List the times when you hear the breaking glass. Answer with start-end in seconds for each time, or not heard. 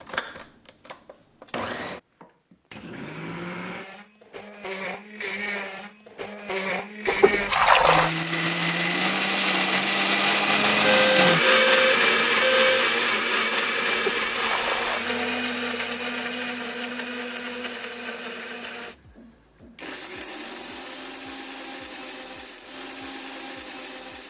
not heard.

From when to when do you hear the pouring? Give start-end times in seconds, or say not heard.
7.0-8.1, 13.9-15.0.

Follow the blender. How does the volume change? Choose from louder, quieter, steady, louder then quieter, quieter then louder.
louder then quieter.